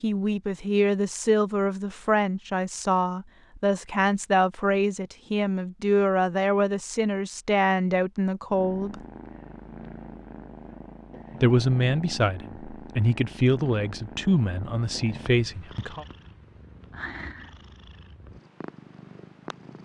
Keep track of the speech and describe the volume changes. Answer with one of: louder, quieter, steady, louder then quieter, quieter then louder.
steady.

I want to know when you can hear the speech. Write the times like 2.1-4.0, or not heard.
0.0-9.0, 11.4-16.1.